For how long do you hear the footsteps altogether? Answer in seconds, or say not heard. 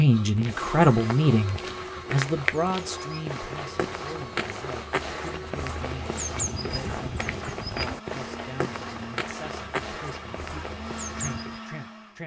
11 s.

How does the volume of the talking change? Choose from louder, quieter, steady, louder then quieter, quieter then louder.
quieter.